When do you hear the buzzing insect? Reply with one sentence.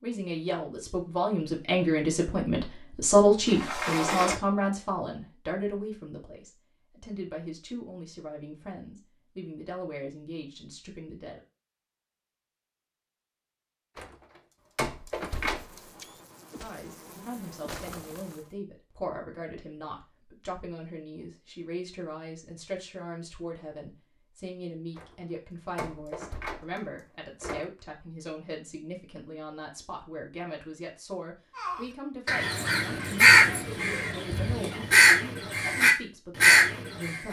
You can hear the buzzing insect from 15.2 to 18.5 s.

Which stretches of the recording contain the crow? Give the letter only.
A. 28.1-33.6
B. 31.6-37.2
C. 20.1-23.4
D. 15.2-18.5
B.